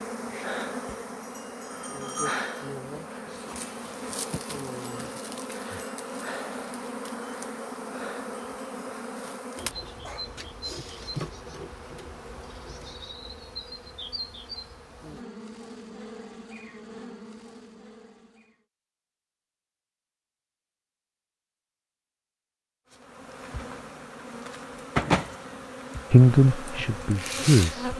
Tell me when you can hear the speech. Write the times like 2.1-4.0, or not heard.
26.1-27.9.